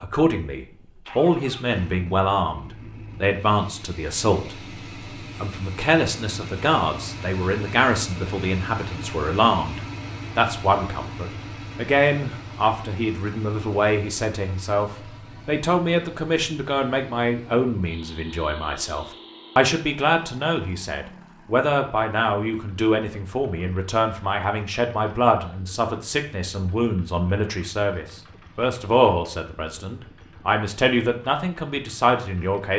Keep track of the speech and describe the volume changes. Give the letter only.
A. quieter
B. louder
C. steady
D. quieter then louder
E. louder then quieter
C.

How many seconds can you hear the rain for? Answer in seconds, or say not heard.
not heard.